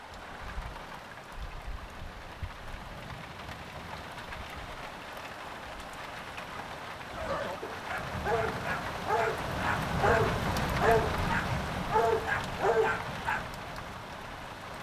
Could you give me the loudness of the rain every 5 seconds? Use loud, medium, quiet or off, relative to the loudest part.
medium, loud, loud.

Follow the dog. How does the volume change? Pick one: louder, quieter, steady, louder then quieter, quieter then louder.
louder.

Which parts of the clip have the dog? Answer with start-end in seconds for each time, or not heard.
7.1-13.4.